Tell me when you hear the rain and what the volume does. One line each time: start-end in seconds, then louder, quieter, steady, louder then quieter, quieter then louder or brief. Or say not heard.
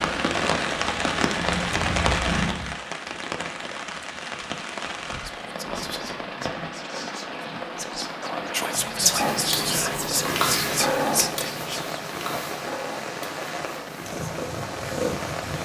0.0-15.6 quieter.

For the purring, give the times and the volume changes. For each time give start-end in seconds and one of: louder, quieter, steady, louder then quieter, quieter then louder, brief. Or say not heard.
0.0-2.8 brief
9.2-15.6 quieter then louder.